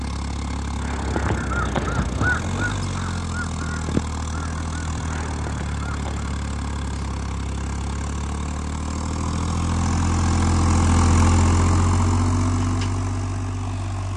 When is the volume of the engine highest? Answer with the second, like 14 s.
11 s.